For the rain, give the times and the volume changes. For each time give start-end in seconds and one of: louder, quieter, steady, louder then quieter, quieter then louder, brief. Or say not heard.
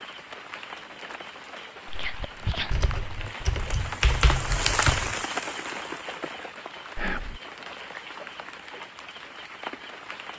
0.0-10.3 louder then quieter.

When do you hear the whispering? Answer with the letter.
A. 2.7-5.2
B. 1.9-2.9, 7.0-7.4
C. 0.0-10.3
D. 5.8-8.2
B.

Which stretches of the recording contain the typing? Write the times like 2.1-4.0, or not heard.
2.7-5.2.